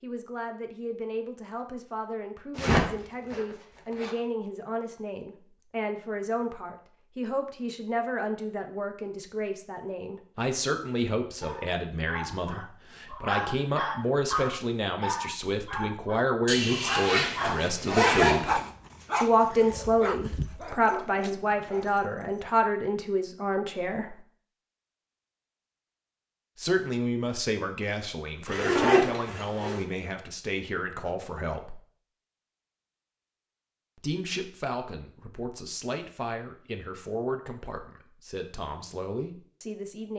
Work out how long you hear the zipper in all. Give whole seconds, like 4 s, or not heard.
5 s.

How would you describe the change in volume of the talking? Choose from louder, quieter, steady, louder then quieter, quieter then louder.
louder then quieter.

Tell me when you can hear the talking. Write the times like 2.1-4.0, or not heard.
0.0-18.6, 19.2-24.2, 26.6-31.8, 34.0-40.1.